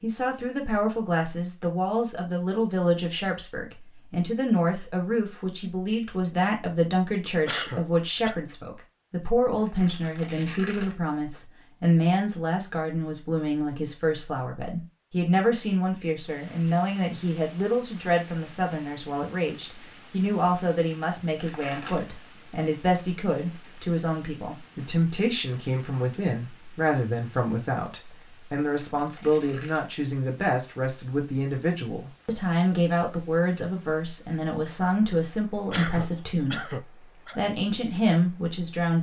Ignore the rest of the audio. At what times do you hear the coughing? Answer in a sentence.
You can hear the coughing from 7.5 to 8.4 s and from 35.7 to 37.4 s.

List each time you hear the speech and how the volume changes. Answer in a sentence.
You can hear the speech from 0.0 to 38.9 s, at a steady volume.